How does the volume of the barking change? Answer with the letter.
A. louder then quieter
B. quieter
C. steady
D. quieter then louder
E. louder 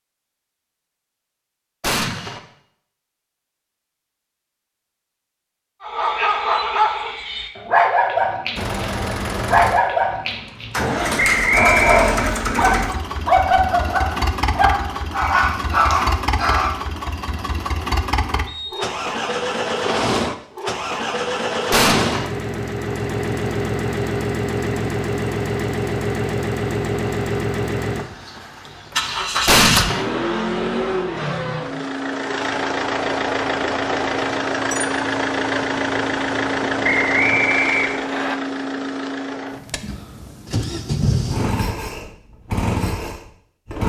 C.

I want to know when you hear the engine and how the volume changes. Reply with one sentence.
You can hear the engine from 8.6 to 43.8 s, at a steady volume.